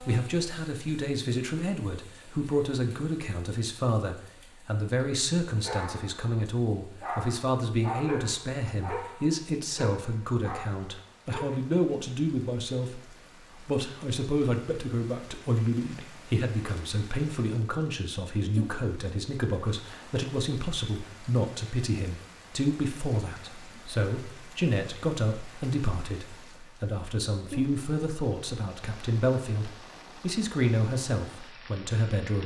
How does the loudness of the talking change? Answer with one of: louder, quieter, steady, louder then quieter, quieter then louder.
steady.